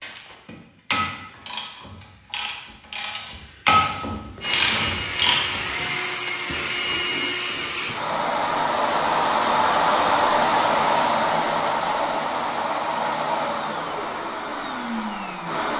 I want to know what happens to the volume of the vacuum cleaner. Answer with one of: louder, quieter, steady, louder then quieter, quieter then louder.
louder then quieter.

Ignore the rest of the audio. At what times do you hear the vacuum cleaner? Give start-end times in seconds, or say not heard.
4.4-15.7.